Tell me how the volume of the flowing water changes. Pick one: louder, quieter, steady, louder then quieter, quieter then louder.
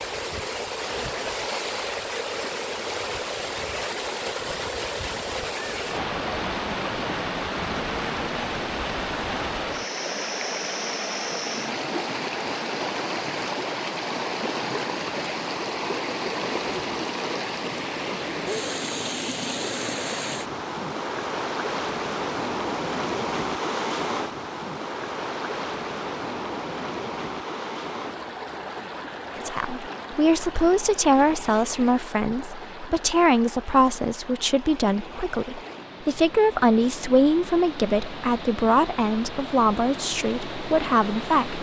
quieter.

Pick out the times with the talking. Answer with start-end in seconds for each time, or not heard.
29.4-41.5.